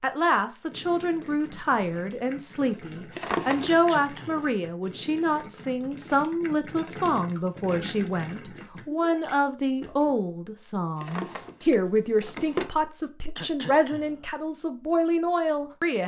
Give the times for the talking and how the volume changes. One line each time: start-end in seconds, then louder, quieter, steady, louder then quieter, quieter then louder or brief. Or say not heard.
0.0-16.0 steady.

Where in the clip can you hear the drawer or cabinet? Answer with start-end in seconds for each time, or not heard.
3.1-4.5, 10.9-12.7.